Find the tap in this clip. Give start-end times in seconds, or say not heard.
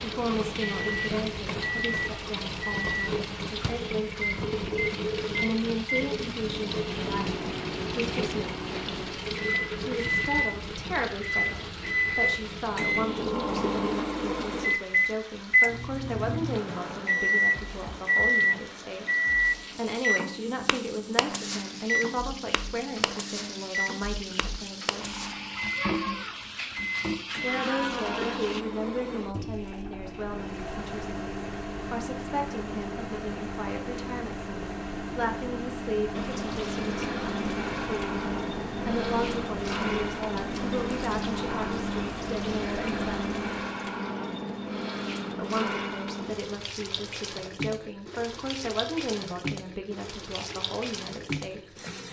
0.0-28.6, 36.1-52.0.